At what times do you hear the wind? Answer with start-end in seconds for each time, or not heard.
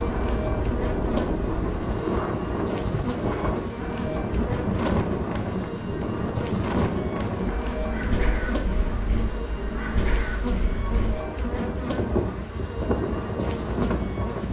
0.0-14.4.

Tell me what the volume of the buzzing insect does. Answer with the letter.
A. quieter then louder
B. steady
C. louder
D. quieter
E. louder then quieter
B.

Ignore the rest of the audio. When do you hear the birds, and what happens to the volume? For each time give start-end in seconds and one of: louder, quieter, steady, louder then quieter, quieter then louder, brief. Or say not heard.
not heard.